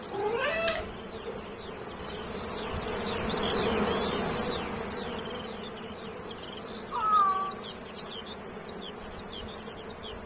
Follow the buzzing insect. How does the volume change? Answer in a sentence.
The loudness of the buzzing insect goes up, then down.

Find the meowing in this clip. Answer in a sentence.
The meowing can be heard from 0.1 to 1.3 s and from 6.9 to 8.1 s.